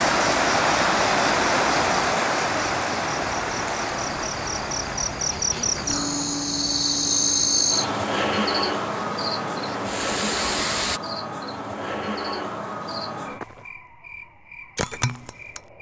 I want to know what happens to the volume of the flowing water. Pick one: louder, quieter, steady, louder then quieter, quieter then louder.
quieter then louder.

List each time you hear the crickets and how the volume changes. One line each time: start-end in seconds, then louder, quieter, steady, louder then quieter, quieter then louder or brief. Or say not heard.
0.1-15.7 louder then quieter.